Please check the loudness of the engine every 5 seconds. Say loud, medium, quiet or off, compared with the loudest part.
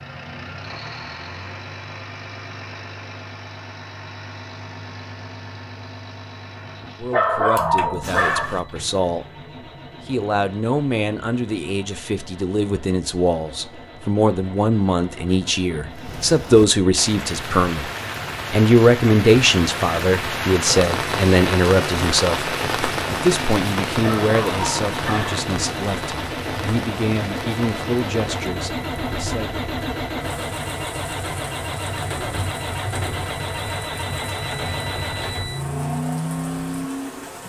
medium, quiet, quiet, quiet, medium, loud, loud, loud.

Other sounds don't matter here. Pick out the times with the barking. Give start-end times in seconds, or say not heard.
7.0-8.6, 23.9-25.4.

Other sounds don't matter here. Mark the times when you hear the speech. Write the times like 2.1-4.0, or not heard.
7.0-9.2, 10.1-17.9, 18.5-29.6.